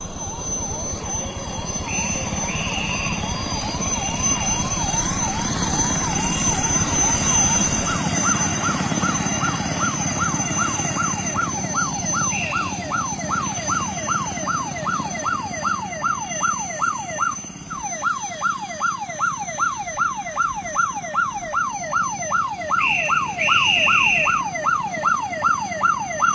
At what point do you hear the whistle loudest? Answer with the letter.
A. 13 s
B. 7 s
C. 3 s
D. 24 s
D.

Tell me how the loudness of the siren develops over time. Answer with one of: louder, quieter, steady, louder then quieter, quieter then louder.
louder.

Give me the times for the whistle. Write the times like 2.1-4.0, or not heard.
1.9-3.2, 12.3-12.8, 22.8-24.4.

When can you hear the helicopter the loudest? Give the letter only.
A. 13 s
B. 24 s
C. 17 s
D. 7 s
D.